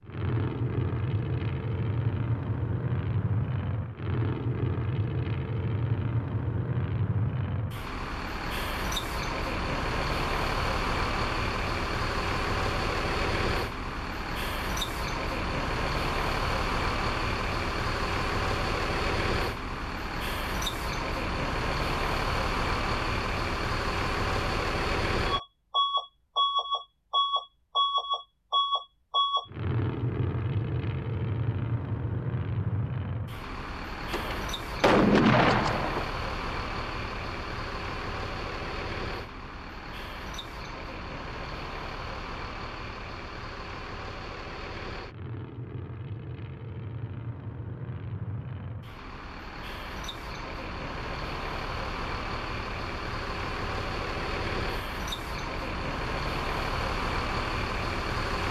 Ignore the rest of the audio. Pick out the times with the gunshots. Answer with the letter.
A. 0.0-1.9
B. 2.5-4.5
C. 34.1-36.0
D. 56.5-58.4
C.